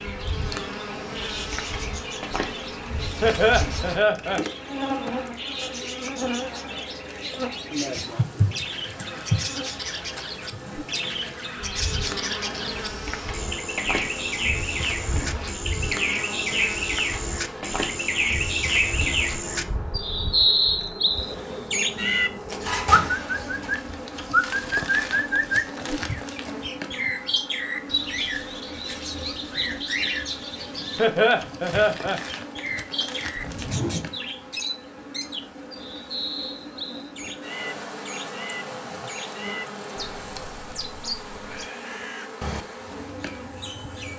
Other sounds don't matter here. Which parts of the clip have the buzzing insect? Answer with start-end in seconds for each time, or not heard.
0.0-44.1.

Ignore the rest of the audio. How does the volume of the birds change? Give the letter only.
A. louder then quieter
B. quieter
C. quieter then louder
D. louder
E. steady
A.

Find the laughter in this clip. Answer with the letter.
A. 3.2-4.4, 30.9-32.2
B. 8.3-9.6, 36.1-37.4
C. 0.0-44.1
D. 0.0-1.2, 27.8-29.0
A.